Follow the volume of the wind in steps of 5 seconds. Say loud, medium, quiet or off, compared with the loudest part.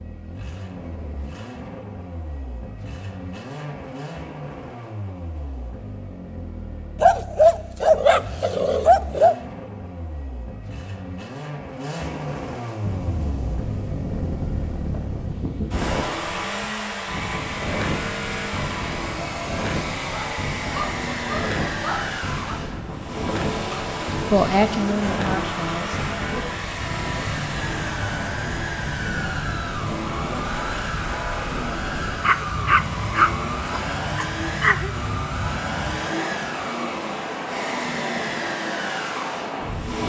off, off, loud, loud, loud, loud, loud, loud.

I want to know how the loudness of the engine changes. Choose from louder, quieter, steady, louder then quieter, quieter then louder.
louder.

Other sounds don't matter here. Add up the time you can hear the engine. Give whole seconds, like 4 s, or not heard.
40 s.